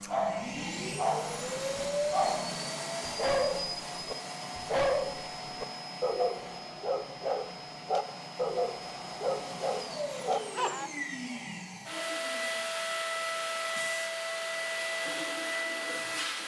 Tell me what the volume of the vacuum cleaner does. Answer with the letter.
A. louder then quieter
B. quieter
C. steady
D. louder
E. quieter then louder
E.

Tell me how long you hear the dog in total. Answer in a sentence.
The dog can be heard for 11 seconds in total.